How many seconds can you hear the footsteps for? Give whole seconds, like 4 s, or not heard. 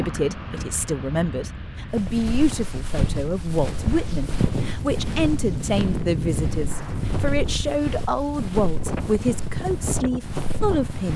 9 s.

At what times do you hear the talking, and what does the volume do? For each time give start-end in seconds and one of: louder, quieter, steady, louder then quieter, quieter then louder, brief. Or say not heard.
0.0-11.1 steady.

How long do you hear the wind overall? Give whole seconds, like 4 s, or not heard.
11 s.